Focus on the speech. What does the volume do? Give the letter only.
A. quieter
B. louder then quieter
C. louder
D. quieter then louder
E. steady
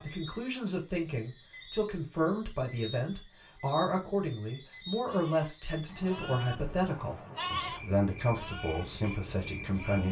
E.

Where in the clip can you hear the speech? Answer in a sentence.
You can hear the speech from 0.0 to 10.0 s.